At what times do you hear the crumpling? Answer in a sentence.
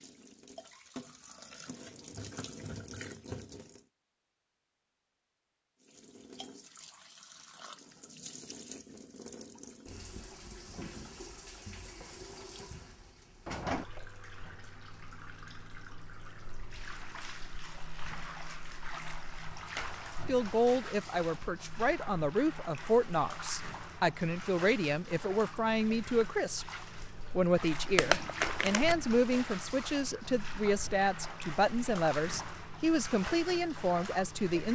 The crumpling can be heard from 27.9 to 28.9 s.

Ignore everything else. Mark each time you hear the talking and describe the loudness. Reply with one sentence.
You can hear the talking from 20.2 to 26.6 s, at a steady volume; and from 27.2 to 34.7 s, at a steady volume.